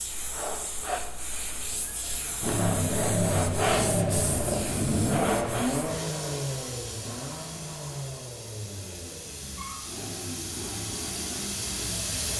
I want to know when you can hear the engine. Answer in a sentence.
The engine can be heard from 2.4 to 12.3 s.